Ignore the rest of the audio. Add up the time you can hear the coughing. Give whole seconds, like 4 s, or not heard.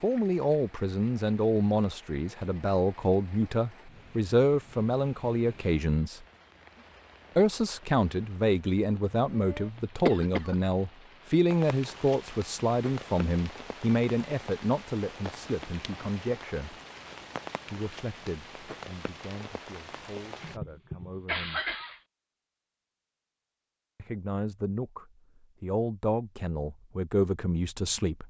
2 s.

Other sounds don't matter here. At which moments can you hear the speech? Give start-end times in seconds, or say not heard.
0.0-6.2, 7.3-16.8, 17.6-21.6, 23.9-28.2.